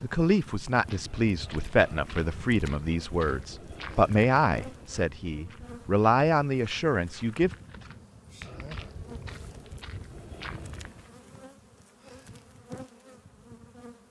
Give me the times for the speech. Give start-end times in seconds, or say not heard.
0.0-7.5.